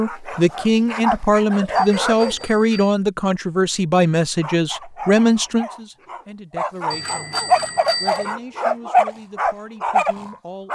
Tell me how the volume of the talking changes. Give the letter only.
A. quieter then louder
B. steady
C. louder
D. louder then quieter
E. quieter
E.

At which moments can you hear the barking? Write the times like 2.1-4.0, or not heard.
0.0-2.5, 4.4-10.7.